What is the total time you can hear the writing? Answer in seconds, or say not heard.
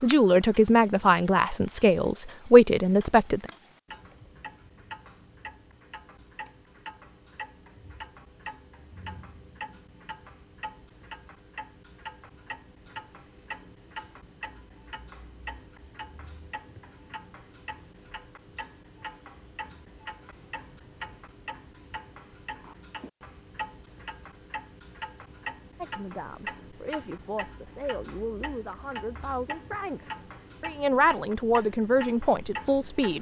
not heard.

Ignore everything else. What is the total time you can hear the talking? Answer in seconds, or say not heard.
11 s.